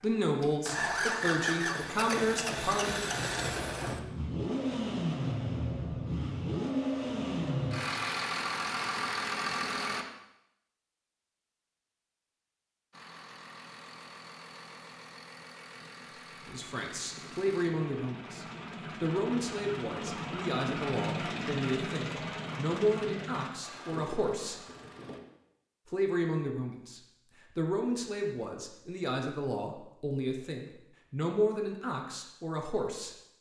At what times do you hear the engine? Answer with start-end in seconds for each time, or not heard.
0.0-10.1, 12.9-25.2.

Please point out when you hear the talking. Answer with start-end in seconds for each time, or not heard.
0.0-3.0, 16.4-24.6, 25.9-33.1.